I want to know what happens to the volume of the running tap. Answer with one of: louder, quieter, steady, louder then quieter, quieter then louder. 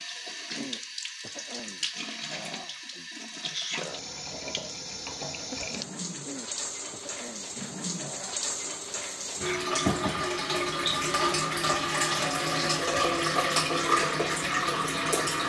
louder.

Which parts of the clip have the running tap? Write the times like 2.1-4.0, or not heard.
0.0-15.4.